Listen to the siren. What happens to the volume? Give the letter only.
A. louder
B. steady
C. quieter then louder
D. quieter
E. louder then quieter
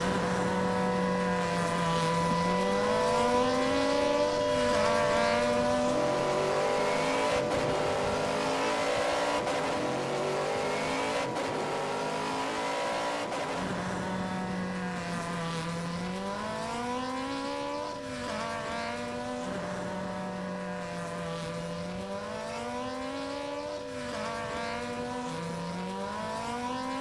D.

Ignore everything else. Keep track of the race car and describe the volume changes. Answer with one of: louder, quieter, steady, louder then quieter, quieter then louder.
quieter.